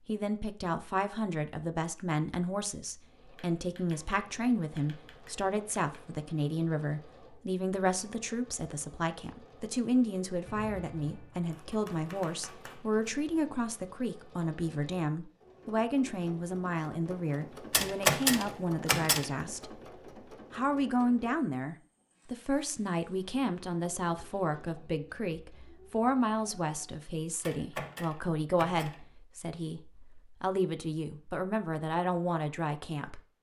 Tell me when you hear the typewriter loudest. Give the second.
18 s.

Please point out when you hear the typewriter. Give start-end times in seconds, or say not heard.
3.4-6.2, 10.4-13.1, 17.7-19.3, 27.4-29.0.